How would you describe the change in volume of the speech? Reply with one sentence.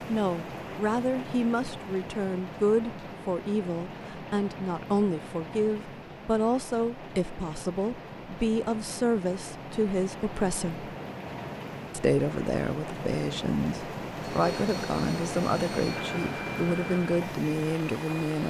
The loudness of the speech stays about the same.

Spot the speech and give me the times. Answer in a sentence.
The speech can be heard from 0.1 to 10.9 s and from 11.9 to 18.4 s.